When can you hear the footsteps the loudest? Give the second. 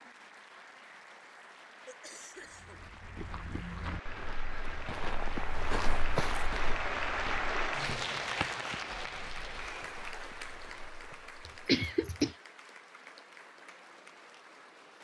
6 s.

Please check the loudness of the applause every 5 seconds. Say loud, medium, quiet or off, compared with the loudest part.
quiet, loud, quiet.